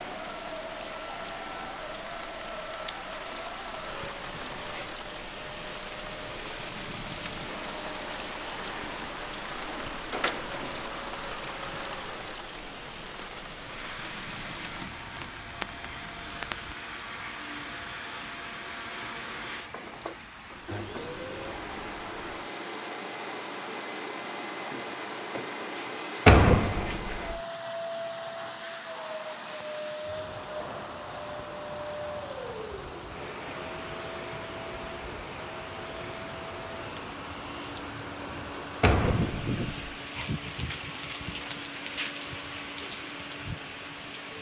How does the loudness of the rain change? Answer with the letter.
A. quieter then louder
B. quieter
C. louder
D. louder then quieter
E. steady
A.